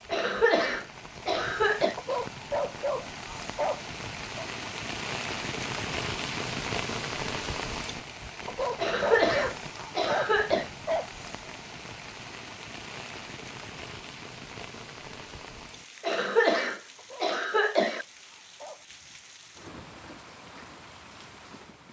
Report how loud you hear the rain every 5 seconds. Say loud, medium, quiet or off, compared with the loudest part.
medium, loud, medium, quiet, quiet.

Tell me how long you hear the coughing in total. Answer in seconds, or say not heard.
6 s.